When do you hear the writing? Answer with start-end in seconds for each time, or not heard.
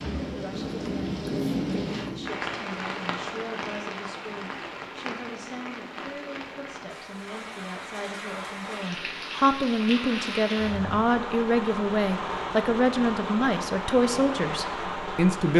0.5-2.3.